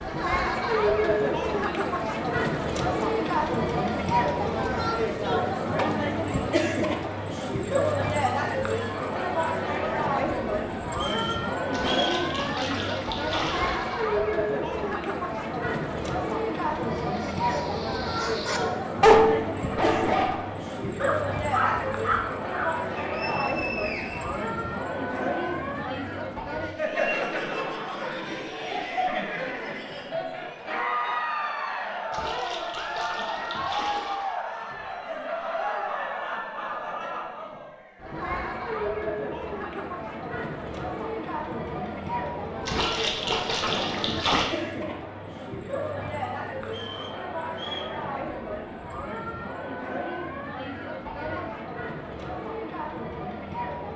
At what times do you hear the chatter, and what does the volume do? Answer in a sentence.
The chatter can be heard from 0.0 to 53.9 s, getting quieter.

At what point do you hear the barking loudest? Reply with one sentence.
The loudest moment of the barking is at 19 seconds.